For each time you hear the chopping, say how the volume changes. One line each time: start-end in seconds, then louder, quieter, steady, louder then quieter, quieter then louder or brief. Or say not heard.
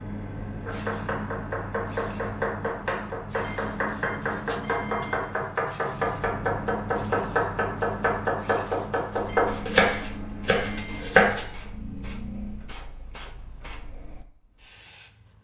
0.7-11.4 louder.